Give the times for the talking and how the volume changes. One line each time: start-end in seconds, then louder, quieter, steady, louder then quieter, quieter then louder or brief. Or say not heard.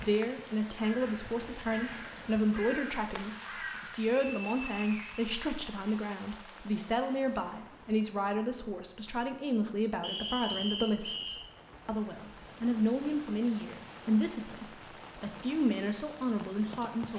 0.0-17.1 steady.